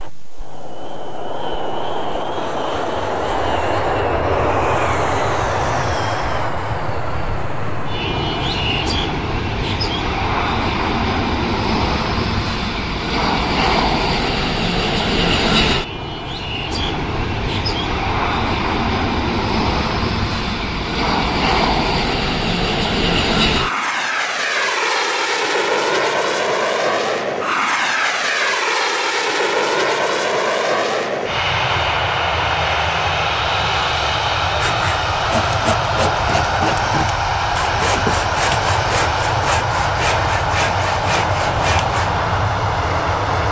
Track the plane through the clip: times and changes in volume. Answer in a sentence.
The plane can be heard from 0.0 to 43.4 s, at a steady volume.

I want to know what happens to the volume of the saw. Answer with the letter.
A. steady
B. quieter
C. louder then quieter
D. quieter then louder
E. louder
A.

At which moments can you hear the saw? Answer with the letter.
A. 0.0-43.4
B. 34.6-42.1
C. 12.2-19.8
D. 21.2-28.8
B.